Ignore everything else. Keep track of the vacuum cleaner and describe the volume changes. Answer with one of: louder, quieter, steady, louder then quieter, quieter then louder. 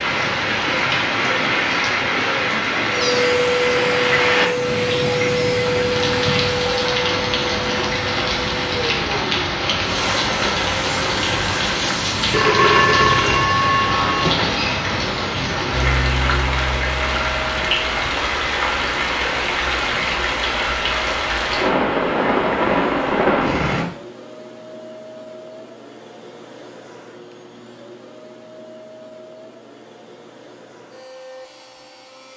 quieter.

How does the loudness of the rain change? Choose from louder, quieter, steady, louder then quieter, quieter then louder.
steady.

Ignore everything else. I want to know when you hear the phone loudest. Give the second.
13 s.